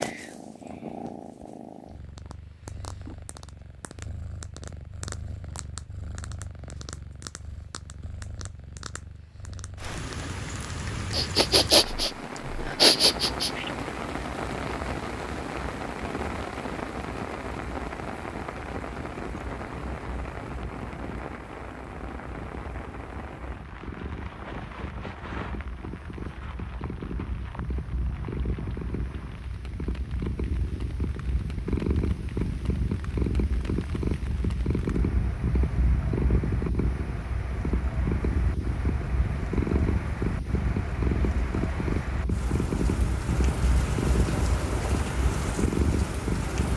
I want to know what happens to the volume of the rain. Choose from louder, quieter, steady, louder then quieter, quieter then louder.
quieter then louder.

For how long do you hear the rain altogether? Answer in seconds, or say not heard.
37 s.